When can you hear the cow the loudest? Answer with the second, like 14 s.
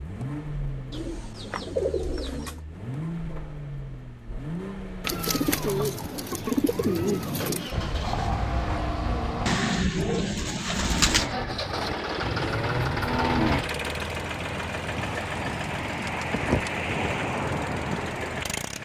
13 s.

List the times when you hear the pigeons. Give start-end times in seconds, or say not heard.
0.9-2.6, 5.0-7.7, 9.4-11.2, 15.2-16.7.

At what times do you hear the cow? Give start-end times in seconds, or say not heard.
7.7-13.7.